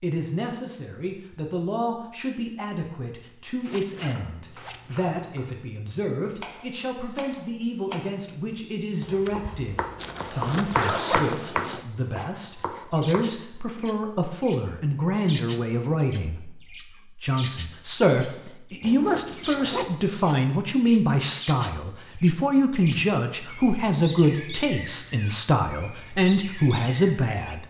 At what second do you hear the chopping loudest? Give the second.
11 s.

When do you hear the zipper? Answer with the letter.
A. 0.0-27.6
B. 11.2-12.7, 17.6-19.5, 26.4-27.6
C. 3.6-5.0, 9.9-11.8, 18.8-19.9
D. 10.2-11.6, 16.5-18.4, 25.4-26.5
C.